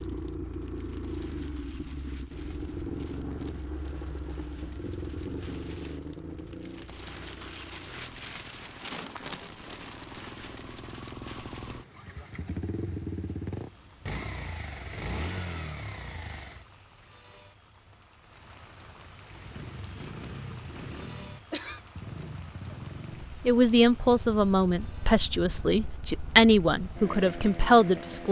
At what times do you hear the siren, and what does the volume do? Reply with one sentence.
The siren can't be heard in this clip.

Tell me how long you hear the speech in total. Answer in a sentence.
You can hear the speech for 5 seconds altogether.